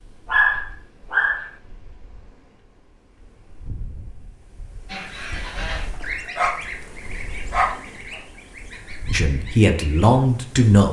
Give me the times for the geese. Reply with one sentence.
You can hear the geese from 4.8 to 10.1 s.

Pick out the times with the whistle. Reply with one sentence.
You can't hear the whistle here.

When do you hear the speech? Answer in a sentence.
You can hear the speech from 9.1 to 10.8 s.